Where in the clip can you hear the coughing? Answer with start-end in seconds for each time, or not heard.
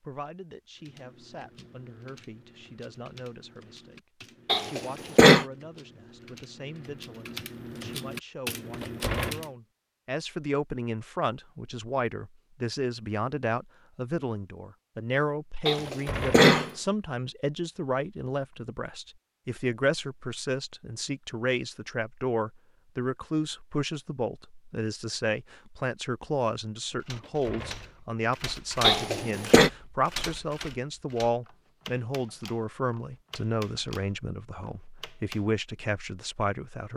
4.5-5.5, 15.7-16.7, 28.8-29.7.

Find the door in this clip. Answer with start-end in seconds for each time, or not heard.
8.7-9.4, 15.8-16.4, 27.1-28.1.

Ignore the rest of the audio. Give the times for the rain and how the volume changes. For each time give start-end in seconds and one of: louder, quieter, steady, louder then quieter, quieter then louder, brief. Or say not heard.
not heard.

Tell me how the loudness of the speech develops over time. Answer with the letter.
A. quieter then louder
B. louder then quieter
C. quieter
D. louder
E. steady
D.